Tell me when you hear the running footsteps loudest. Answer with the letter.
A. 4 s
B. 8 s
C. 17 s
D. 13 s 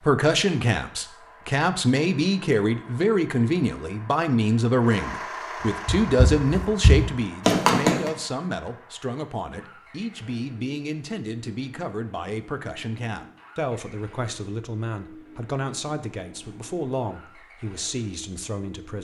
B.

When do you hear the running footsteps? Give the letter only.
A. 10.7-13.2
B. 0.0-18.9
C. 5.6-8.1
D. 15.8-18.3
C.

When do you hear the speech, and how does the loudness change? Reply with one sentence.
The speech can be heard from 0.0 to 18.9 s, getting quieter.